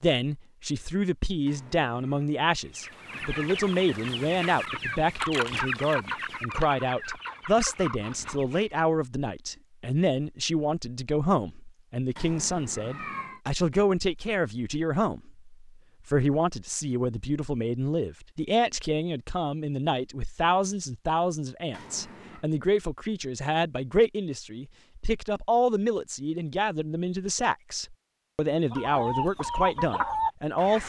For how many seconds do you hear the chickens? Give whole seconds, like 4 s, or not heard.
8 s.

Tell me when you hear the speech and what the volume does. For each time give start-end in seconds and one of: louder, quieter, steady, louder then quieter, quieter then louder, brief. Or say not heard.
0.0-30.8 steady.